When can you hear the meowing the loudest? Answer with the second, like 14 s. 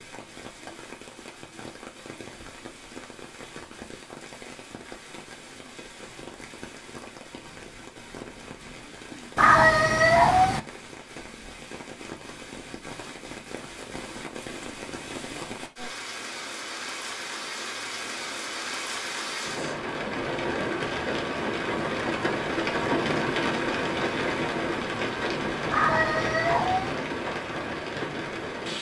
10 s.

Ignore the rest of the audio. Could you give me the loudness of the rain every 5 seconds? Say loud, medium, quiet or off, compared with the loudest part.
quiet, quiet, quiet, medium, loud, loud.